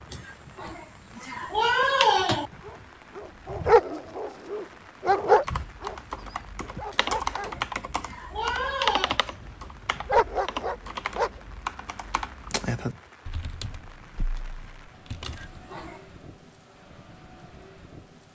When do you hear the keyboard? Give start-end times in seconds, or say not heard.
5.2-15.6.